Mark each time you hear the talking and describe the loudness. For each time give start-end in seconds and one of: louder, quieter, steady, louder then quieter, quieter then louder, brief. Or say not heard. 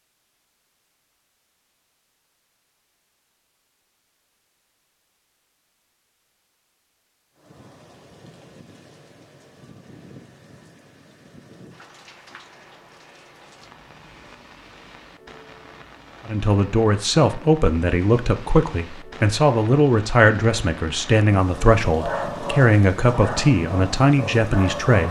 16.2-25.0 steady.